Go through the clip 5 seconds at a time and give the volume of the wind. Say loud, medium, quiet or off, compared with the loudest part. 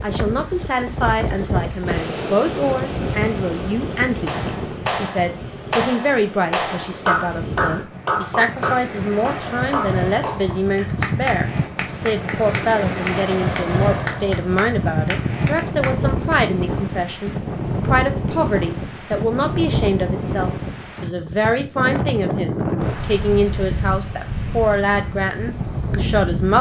loud, medium, loud, loud, loud, loud.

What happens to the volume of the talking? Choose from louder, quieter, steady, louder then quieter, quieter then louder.
steady.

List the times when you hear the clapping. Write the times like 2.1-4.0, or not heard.
4.2-16.4.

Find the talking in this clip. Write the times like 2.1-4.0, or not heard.
0.0-26.5.